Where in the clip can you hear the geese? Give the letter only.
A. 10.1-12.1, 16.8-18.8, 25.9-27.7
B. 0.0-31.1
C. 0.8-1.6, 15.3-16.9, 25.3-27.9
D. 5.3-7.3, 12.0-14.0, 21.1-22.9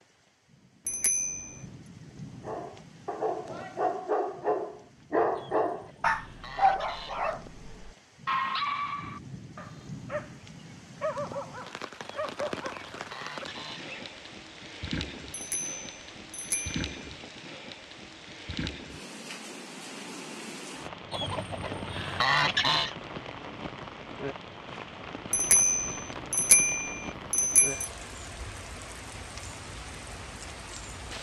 D.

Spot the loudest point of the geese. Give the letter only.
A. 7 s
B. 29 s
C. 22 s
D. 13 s
C.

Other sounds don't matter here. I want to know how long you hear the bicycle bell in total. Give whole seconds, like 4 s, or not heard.
5 s.